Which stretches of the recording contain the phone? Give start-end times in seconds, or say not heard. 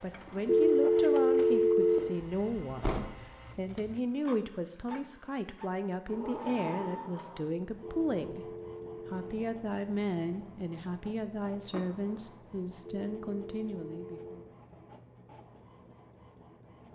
0.5-2.0, 7.8-9.3, 12.8-14.3.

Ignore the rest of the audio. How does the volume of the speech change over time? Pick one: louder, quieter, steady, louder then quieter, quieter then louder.
steady.